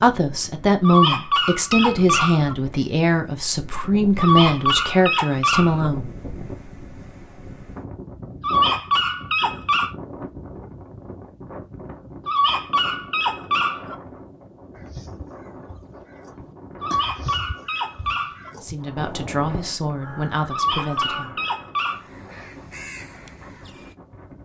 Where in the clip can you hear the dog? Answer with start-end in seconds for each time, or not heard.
0.8-2.5, 4.2-5.9, 8.4-9.9, 12.2-13.9, 16.8-18.5, 20.5-22.1.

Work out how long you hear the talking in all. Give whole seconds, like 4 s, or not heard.
9 s.